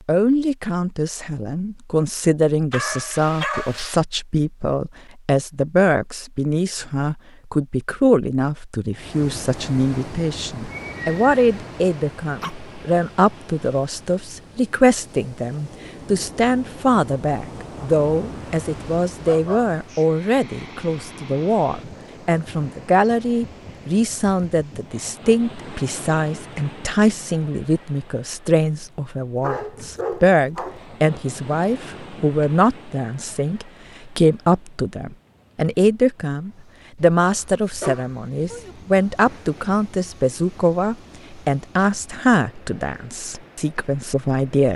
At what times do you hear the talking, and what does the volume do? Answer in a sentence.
You can hear the talking from 0.1 to 44.7 s, at a steady volume.